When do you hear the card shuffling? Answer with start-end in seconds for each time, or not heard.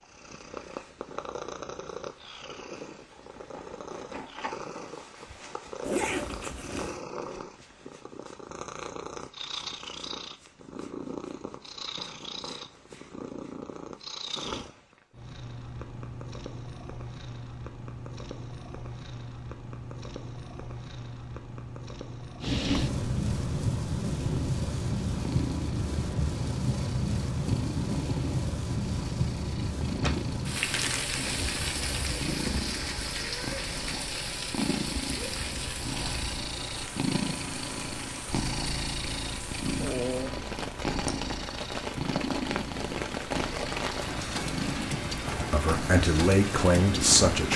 30.0-31.2.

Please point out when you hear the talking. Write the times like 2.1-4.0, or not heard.
45.5-47.5.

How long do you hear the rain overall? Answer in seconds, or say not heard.
25 s.